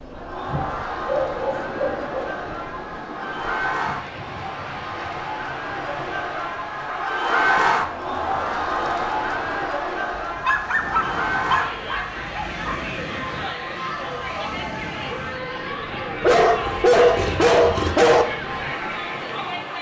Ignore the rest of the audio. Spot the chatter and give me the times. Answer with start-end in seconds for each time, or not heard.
0.0-19.7.